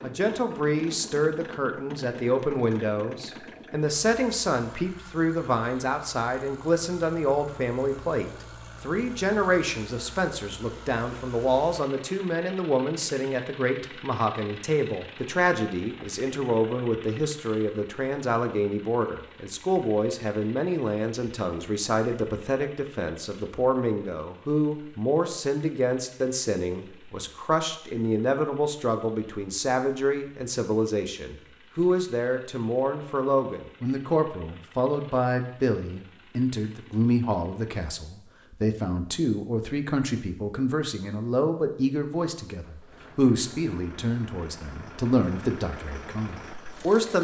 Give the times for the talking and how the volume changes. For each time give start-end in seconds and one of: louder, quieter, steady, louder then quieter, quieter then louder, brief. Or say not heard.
0.0-47.2 steady.